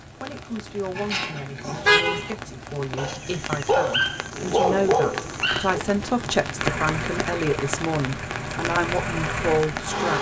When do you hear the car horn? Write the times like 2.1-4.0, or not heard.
0.9-2.3.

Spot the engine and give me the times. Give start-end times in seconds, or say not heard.
6.5-10.1.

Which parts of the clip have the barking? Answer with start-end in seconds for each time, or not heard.
3.0-5.8.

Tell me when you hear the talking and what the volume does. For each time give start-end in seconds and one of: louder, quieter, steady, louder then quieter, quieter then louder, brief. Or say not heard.
0.2-10.1 louder.